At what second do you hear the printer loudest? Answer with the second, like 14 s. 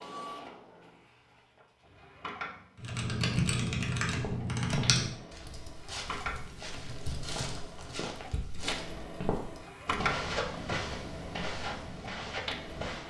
10 s.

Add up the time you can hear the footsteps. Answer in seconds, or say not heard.
9 s.